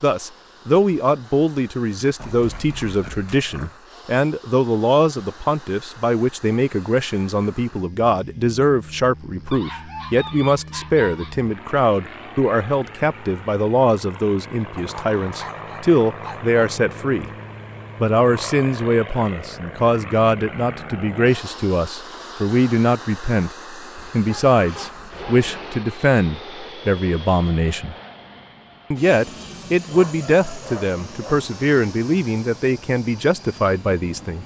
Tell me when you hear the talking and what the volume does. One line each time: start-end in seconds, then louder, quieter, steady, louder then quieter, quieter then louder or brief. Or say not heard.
0.0-17.3 steady
18.0-27.9 steady
28.9-34.4 steady.